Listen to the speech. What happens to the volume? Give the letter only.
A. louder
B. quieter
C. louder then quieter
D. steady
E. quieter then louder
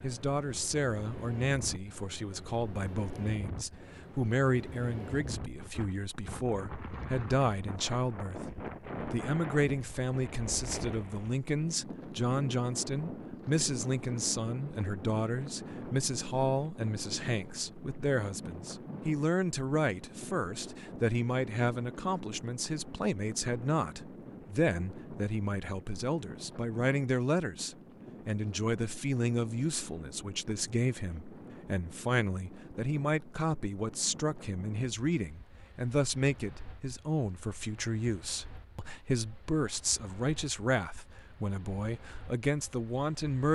D.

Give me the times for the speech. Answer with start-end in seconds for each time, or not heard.
0.0-43.5.